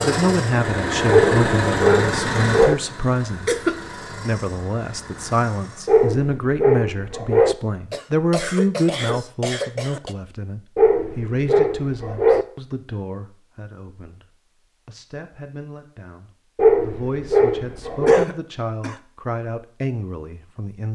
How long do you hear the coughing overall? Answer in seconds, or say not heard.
4 s.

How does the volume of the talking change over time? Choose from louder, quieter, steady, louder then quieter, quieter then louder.
quieter then louder.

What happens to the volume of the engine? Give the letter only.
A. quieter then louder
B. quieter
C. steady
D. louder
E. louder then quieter
B.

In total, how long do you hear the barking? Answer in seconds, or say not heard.
7 s.